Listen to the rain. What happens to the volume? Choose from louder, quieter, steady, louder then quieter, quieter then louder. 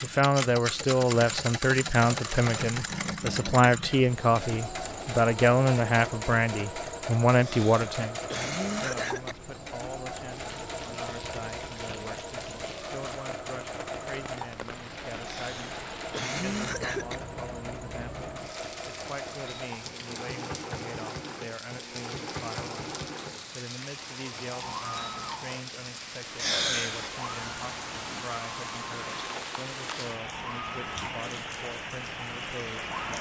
louder.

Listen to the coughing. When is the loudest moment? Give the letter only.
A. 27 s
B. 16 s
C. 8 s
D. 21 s
A.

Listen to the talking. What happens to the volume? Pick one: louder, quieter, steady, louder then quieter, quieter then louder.
quieter.